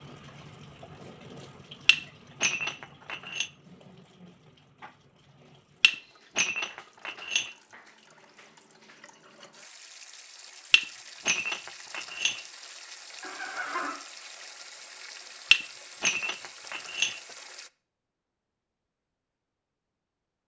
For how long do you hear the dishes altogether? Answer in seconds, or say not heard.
7 s.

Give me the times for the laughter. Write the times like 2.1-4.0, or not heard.
13.2-14.0.